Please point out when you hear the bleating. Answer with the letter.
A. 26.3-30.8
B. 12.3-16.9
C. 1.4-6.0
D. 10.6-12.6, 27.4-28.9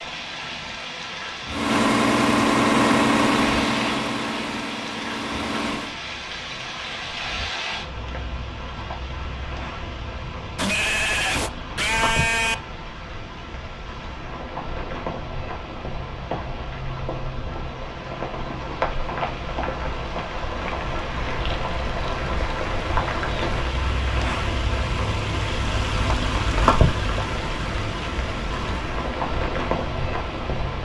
D.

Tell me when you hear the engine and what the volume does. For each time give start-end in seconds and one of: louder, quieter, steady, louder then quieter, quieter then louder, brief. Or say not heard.
1.4-6.0 quieter.